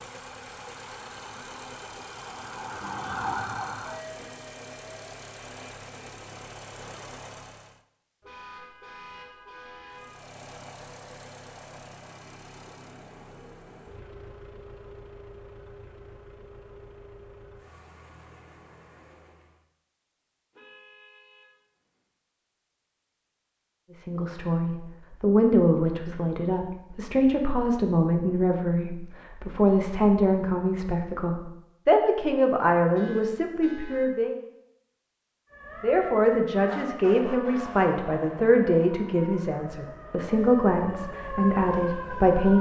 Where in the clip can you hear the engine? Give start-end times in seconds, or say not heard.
0.0-7.8, 9.8-19.6.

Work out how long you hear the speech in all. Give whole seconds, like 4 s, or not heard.
17 s.